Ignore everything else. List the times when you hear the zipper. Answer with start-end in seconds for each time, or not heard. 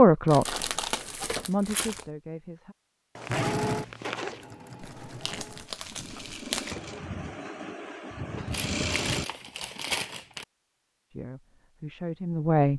3.1-4.5.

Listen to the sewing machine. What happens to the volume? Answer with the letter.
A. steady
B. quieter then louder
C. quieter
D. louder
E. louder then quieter
B.